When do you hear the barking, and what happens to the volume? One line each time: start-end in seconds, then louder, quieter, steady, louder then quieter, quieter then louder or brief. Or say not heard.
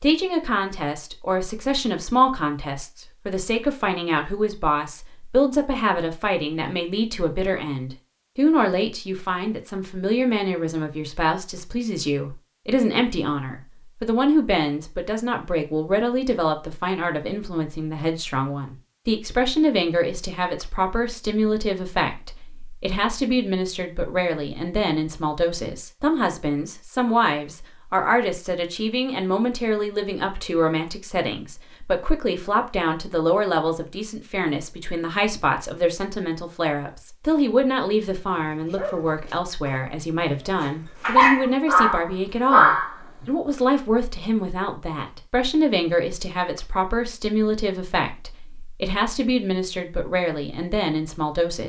38.1-42.9 quieter then louder.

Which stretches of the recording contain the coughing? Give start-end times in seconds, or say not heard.
not heard.